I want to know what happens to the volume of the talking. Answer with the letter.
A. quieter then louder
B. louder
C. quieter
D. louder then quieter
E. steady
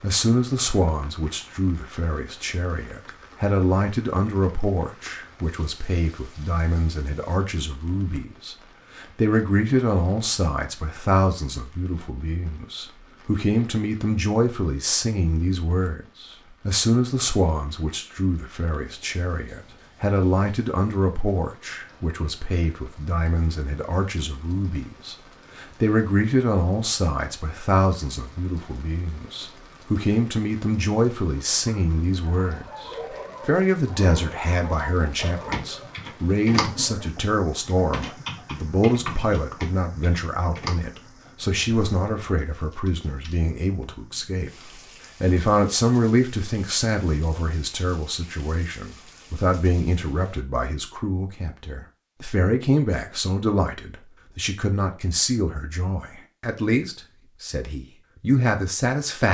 E.